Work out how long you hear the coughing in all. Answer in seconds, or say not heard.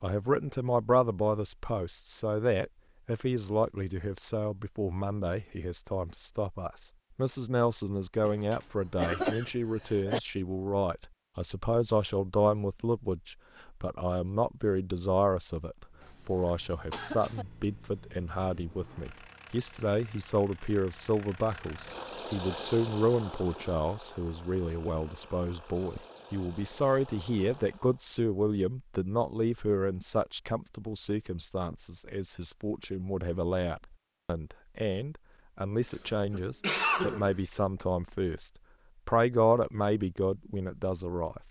5 s.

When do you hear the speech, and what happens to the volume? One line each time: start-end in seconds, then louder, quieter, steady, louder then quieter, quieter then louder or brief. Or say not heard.
0.0-41.4 steady.